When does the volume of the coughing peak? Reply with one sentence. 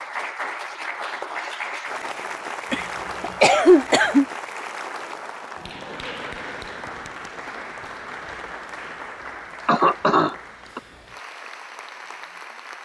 The loudest moment of the coughing is at 4 seconds.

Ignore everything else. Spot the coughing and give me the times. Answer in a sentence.
You can hear the coughing from 2.7 to 4.2 s and from 9.7 to 10.8 s.